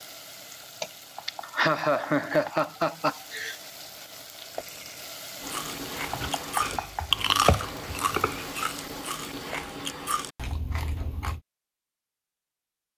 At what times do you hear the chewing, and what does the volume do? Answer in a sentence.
The chewing can be heard from 5.4 to 11.4 s, getting louder then quieter.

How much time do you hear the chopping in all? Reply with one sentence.
The chopping can be heard for 2 seconds in total.